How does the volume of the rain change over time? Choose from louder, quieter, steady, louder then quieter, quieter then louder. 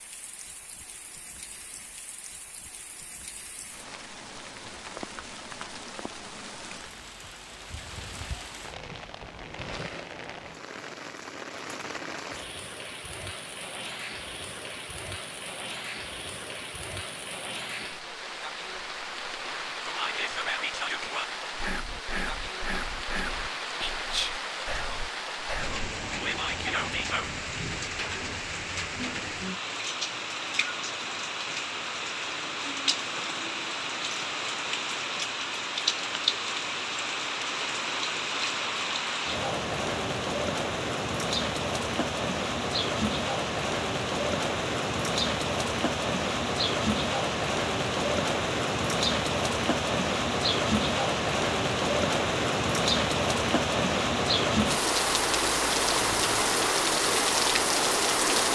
louder.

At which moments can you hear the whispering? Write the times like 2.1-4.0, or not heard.
19.9-27.3.